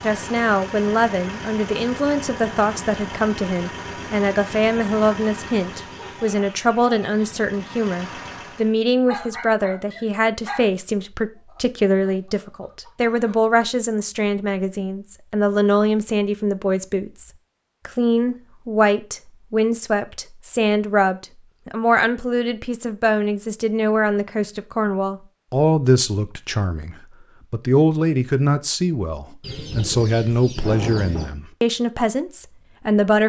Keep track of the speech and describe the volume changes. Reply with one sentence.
The volume of the speech stays about the same.